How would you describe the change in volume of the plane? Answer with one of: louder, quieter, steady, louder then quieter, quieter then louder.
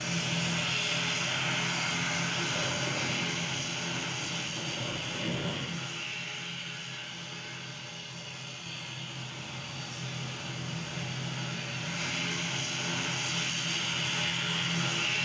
quieter then louder.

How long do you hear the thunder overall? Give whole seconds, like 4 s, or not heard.
3 s.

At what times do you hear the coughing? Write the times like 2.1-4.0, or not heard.
not heard.